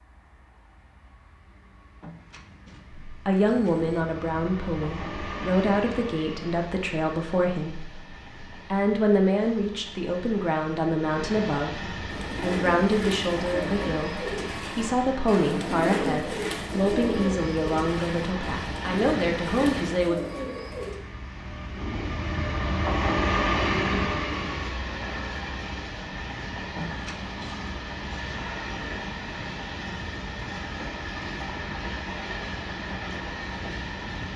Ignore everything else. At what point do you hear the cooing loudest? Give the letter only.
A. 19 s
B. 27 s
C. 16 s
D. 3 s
C.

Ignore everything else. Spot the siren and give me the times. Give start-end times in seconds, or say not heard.
not heard.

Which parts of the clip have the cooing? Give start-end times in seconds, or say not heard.
12.1-21.0.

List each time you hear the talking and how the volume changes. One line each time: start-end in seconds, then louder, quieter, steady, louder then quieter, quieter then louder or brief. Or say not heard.
3.0-20.2 steady.